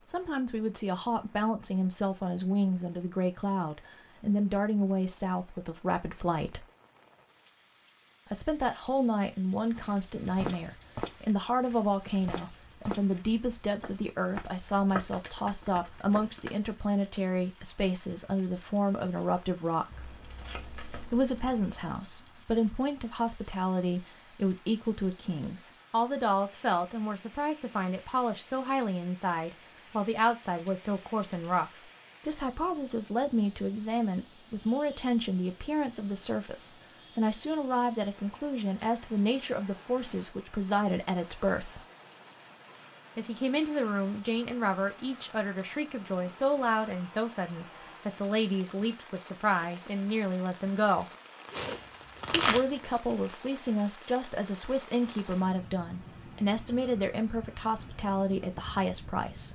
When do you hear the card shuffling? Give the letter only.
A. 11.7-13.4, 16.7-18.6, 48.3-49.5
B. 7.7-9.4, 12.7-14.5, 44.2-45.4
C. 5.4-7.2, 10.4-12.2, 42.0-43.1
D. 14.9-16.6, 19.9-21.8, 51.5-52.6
D.